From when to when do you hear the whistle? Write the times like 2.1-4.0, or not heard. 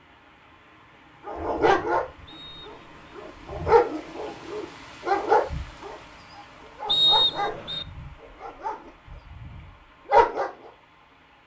2.2-3.2, 6.8-7.8.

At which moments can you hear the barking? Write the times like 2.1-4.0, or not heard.
1.2-2.0, 2.6-10.5.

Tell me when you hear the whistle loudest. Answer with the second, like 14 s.
7 s.